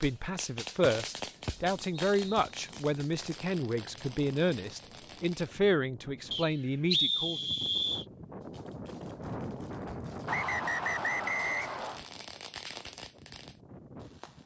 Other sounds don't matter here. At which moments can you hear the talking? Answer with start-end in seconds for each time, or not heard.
0.0-7.5.